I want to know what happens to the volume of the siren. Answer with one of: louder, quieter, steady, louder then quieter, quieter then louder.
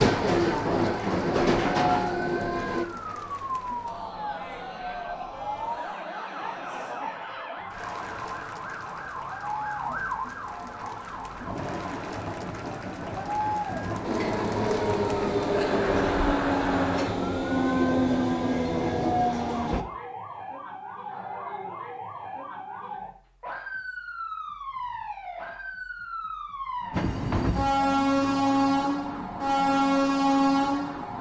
steady.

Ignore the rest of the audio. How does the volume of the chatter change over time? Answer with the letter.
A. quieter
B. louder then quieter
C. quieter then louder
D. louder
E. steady
D.